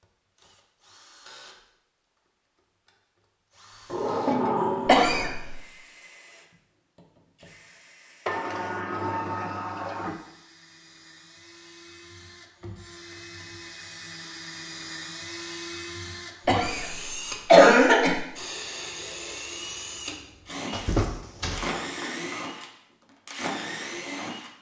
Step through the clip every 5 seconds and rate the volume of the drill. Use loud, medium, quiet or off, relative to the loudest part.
quiet, quiet, medium, loud, loud.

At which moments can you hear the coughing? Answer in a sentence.
The coughing can be heard from 4.8 to 5.5 s and from 16.4 to 18.1 s.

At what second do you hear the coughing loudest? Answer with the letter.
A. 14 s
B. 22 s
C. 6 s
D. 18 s
D.